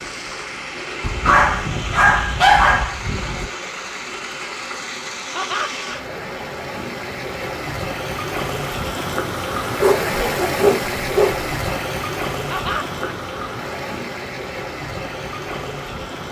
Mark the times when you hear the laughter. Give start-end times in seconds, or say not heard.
5.3-5.8, 12.5-13.2.